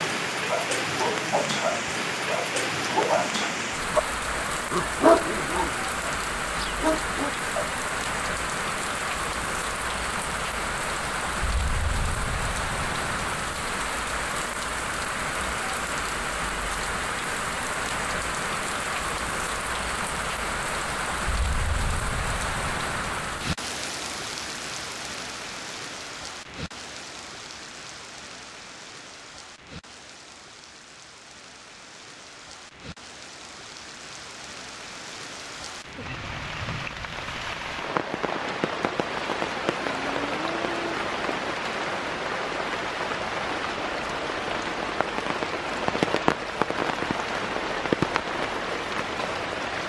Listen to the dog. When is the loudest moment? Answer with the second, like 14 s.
5 s.